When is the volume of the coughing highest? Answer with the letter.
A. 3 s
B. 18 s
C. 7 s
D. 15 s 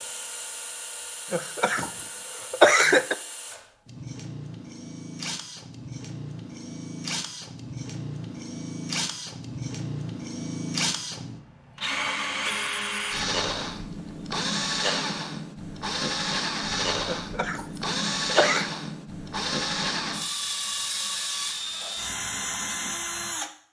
A.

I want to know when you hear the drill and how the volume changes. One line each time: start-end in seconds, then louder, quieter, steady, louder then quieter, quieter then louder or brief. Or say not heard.
0.0-23.5 louder.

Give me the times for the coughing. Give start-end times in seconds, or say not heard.
1.3-3.1, 17.1-18.7.